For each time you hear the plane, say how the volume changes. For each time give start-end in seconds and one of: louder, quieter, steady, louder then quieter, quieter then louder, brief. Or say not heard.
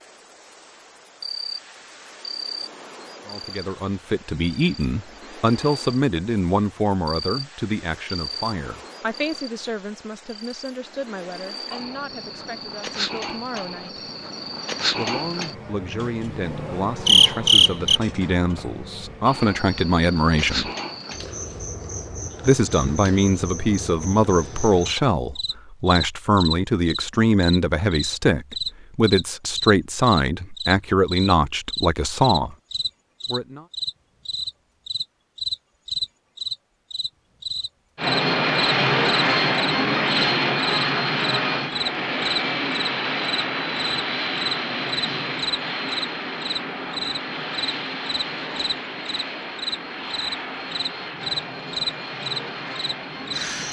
38.0-53.6 quieter.